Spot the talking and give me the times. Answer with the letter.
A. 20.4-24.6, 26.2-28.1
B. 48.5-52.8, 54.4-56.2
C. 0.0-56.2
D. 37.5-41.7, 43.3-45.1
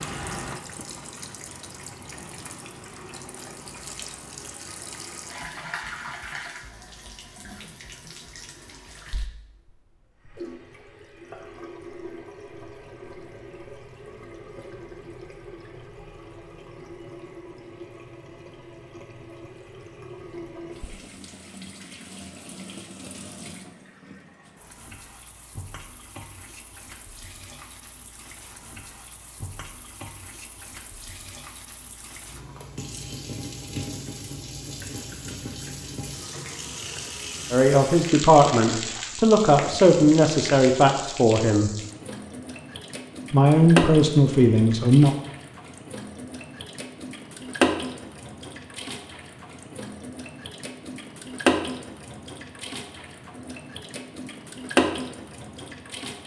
D.